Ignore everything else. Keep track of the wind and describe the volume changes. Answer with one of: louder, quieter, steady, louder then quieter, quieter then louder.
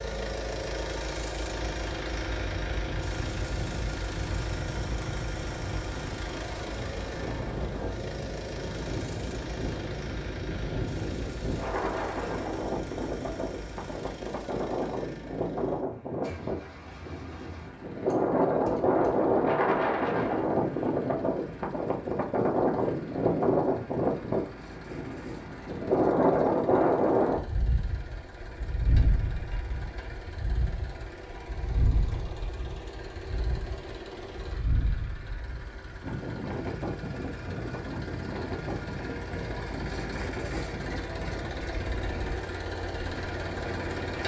louder then quieter.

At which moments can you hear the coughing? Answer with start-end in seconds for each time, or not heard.
not heard.